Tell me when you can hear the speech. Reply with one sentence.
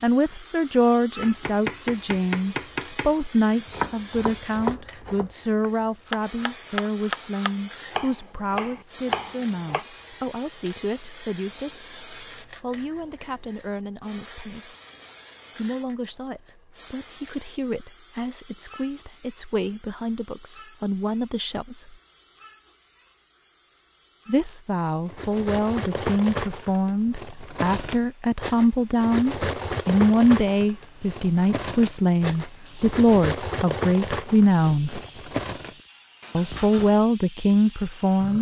The speech can be heard from 0.0 to 14.8 s, from 15.6 to 21.9 s, from 24.2 to 35.0 s and from 36.3 to 38.3 s.